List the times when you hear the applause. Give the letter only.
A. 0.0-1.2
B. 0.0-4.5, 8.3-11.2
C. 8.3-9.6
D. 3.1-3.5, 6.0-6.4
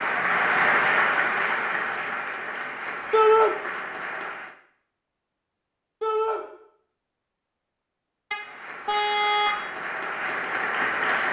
B.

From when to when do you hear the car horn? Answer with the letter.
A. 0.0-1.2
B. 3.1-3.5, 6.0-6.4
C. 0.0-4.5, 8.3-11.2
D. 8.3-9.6
D.